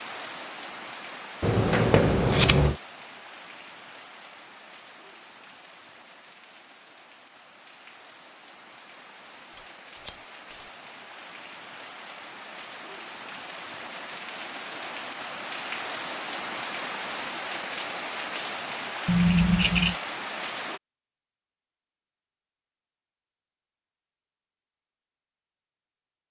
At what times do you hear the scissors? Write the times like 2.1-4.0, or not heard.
1.4-2.8, 9.6-10.6, 19.1-19.9.